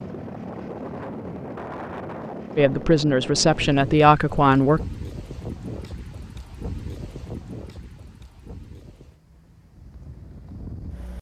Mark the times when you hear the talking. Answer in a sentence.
You can hear the talking from 2.5 to 4.8 s.